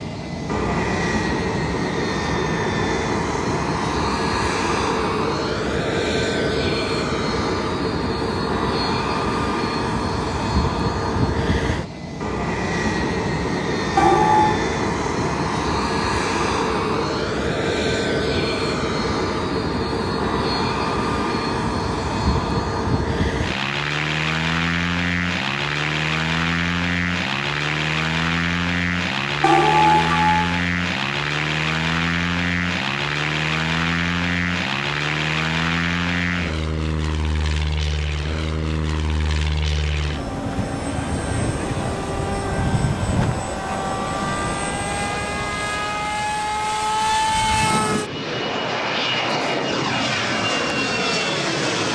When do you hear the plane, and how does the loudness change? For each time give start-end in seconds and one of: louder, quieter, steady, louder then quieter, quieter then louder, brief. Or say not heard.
0.0-51.9 steady.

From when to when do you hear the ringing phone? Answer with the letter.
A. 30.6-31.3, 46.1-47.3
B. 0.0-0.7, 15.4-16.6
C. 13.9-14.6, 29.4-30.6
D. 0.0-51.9
C.